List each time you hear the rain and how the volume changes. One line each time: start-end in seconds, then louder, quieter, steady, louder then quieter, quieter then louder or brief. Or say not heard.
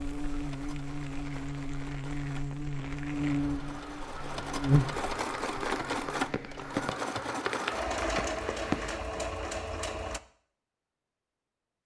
0.0-9.0 louder.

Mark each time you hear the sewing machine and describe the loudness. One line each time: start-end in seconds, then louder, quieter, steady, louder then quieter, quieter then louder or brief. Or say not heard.
0.0-10.2 louder.